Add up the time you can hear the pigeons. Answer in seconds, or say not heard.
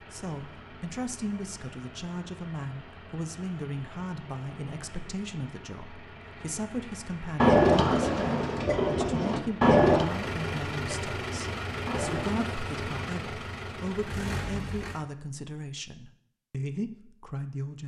5 s.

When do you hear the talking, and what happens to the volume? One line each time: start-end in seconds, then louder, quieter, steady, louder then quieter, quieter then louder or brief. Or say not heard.
0.0-17.8 steady.